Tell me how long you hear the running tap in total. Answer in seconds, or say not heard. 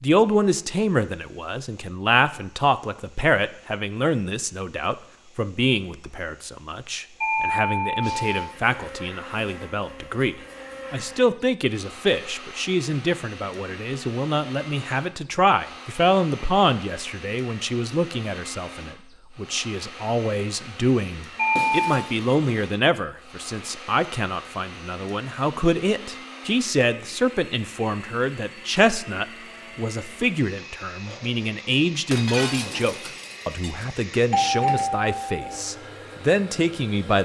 not heard.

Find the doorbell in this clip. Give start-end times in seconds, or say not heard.
7.2-8.3, 21.4-22.0, 33.8-35.5.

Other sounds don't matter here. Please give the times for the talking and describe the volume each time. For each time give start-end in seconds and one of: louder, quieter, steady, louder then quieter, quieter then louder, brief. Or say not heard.
0.0-37.2 steady.